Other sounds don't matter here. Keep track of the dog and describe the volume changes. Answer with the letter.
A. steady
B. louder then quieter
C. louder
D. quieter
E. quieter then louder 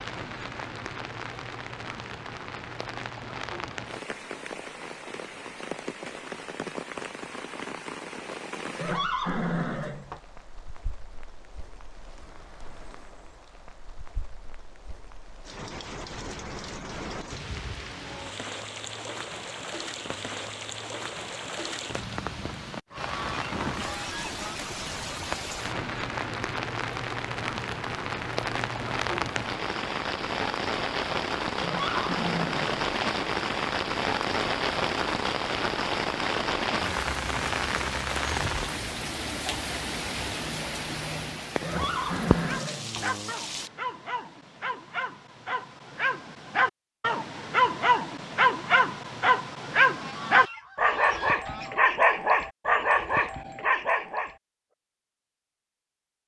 C.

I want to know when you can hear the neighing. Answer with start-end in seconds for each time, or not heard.
8.8-10.2, 31.6-32.8, 41.6-43.1.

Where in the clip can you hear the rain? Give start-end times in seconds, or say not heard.
0.0-43.7.